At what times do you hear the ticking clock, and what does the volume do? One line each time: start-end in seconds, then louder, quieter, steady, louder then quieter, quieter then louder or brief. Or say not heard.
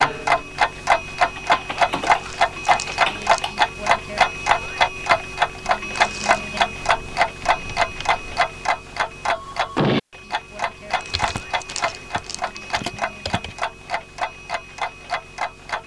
0.0-15.8 quieter.